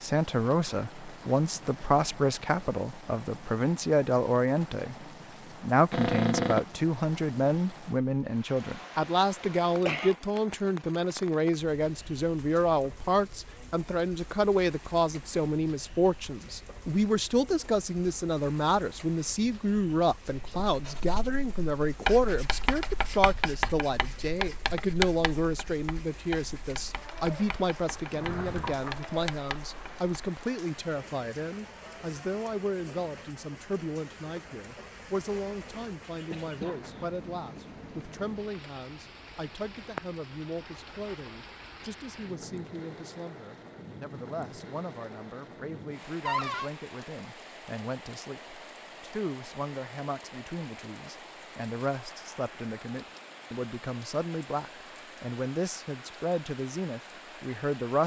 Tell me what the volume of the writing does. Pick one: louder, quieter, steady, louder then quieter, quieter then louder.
quieter.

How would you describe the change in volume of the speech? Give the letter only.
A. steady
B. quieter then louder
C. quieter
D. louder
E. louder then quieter
C.